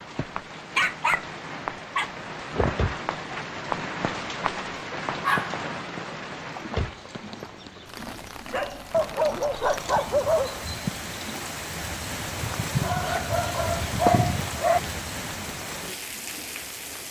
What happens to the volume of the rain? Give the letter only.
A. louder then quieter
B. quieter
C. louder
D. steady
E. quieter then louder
E.